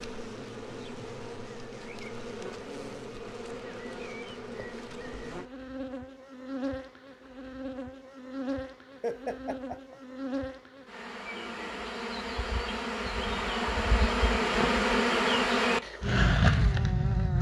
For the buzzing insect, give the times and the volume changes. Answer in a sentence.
You can hear the buzzing insect from 0.0 to 17.3 s, getting louder.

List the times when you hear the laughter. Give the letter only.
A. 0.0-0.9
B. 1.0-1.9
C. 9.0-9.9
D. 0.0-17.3
C.